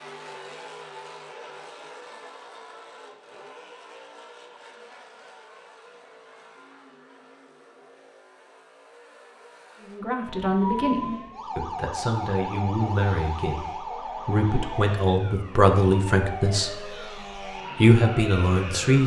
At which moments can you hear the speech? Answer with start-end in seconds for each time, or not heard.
9.8-16.9, 17.8-19.0.